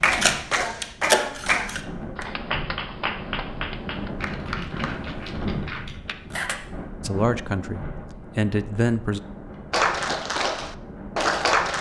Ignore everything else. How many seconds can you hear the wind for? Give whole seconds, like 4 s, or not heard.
12 s.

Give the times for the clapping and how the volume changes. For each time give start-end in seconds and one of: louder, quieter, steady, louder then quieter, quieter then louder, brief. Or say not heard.
0.0-6.2 quieter
9.7-11.7 brief.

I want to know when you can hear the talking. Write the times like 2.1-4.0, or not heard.
7.0-9.2.